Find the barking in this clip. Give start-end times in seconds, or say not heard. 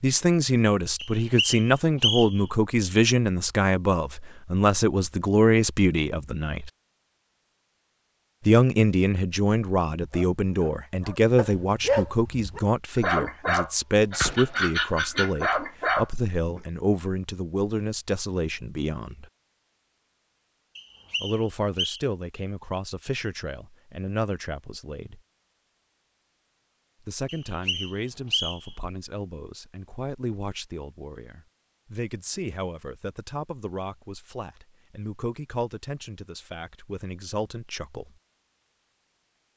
10.1-16.6.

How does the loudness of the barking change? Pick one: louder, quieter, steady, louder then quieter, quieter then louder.
louder.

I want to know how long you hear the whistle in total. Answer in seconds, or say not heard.
4 s.